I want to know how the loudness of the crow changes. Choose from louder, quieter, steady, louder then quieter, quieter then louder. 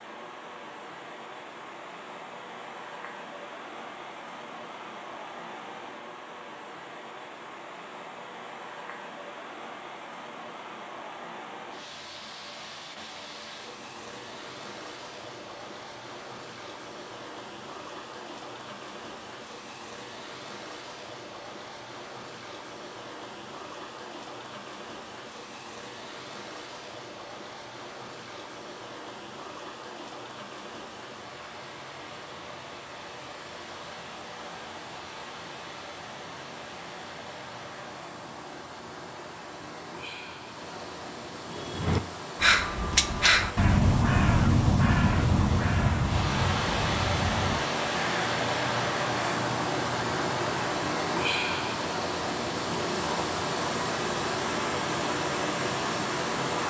quieter.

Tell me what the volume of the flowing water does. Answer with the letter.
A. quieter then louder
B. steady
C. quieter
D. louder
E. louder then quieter
D.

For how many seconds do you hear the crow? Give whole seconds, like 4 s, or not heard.
9 s.